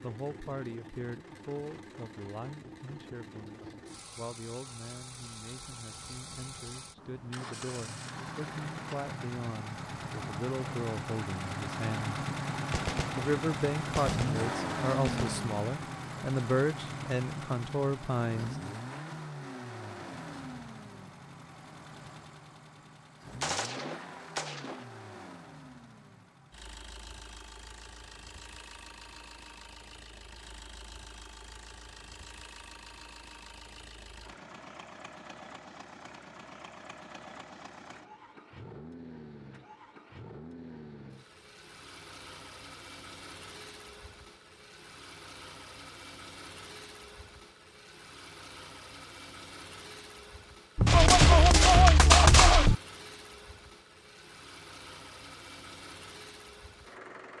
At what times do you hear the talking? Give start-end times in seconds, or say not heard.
0.0-12.2, 13.2-18.8.